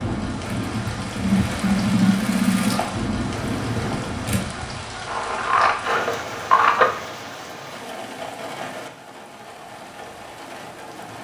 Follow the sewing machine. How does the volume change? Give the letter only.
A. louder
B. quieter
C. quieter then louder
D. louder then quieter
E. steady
D.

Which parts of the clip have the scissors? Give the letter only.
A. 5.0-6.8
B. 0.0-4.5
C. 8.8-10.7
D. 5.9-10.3
A.